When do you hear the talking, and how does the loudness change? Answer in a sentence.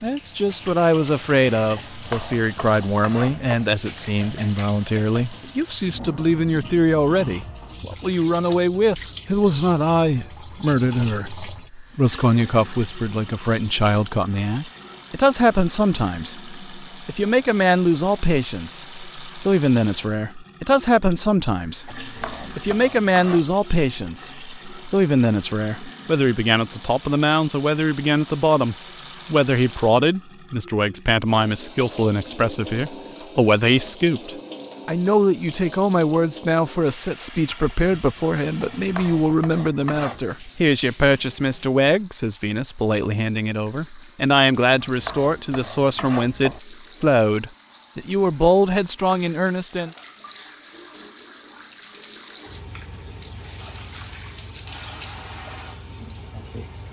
You can hear the talking from 0.0 to 49.9 s, at a steady volume.